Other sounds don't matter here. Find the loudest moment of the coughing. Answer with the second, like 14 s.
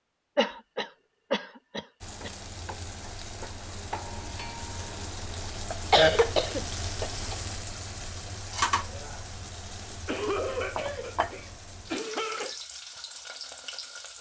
6 s.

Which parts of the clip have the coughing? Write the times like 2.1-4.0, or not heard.
0.3-2.3, 5.7-7.3, 10.1-12.6.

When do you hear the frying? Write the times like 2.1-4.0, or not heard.
2.0-14.1.